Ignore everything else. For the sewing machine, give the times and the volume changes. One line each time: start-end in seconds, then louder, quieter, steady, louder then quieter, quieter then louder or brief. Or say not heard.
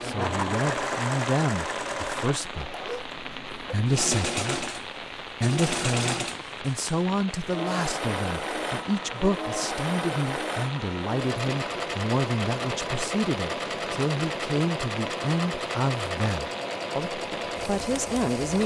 0.0-18.6 steady.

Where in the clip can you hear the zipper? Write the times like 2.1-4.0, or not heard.
2.5-3.1.